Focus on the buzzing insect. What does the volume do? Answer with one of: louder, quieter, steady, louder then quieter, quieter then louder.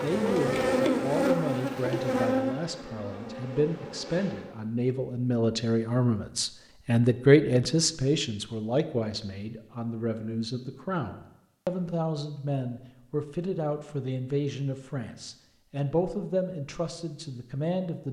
quieter.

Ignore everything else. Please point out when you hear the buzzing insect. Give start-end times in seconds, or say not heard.
0.0-4.5.